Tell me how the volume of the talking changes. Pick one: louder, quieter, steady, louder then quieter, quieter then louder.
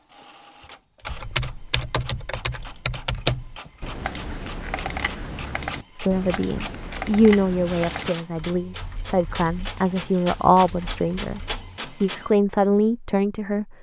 quieter then louder.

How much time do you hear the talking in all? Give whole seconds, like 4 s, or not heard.
8 s.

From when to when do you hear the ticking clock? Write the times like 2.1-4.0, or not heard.
not heard.